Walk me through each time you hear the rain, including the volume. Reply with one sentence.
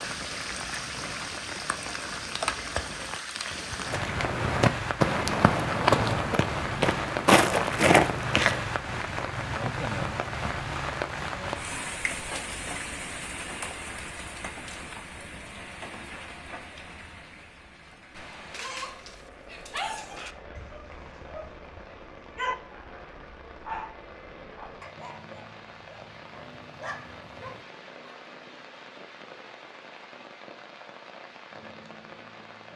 The rain can be heard from 0.0 to 32.7 s, getting quieter.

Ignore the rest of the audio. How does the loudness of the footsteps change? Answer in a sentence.
The loudness of the footsteps goes down.